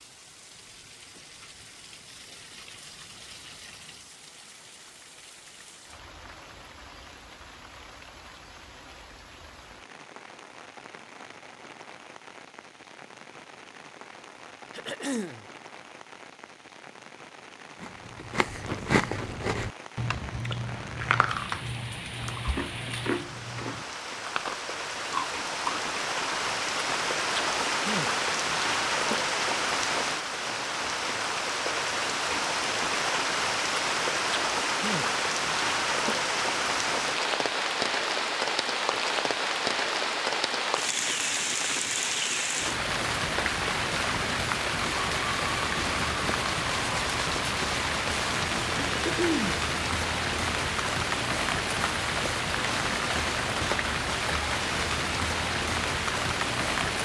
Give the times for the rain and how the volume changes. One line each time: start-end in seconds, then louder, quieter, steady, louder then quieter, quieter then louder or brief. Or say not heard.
0.0-56.9 louder.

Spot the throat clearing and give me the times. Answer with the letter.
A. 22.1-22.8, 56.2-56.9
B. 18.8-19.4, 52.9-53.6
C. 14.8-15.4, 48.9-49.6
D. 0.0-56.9
C.